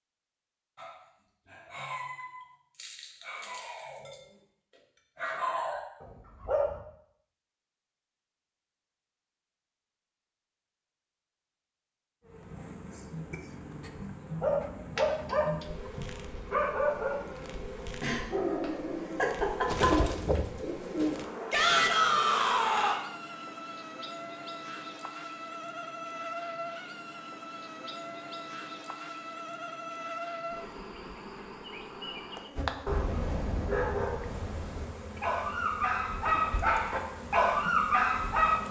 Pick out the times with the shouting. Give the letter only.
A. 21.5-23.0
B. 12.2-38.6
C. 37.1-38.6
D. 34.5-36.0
A.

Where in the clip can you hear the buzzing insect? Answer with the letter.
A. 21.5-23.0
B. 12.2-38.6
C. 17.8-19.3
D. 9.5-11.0
B.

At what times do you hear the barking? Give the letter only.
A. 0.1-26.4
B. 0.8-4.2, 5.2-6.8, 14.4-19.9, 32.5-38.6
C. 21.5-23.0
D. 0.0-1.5
B.